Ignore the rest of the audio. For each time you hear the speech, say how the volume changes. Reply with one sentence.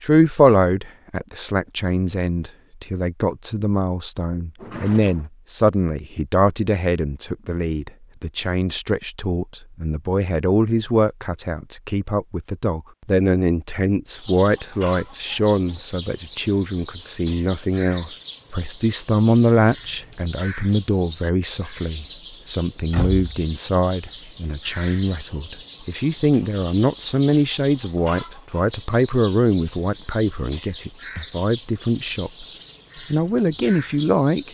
The speech can be heard from 0.0 to 34.4 s, at a steady volume.